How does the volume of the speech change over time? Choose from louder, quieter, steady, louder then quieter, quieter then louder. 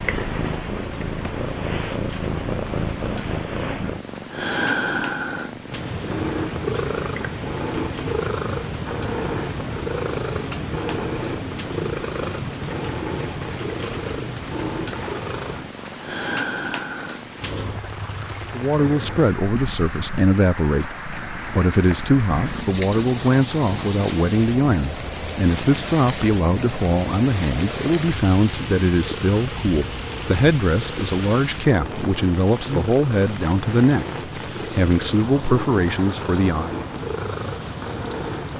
steady.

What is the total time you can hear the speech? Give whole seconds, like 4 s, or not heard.
18 s.